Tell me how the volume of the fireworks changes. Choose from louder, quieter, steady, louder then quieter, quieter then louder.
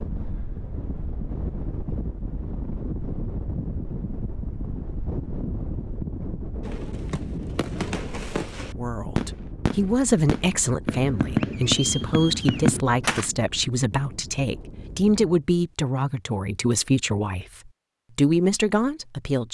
louder.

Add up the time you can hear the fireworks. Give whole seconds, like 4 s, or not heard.
7 s.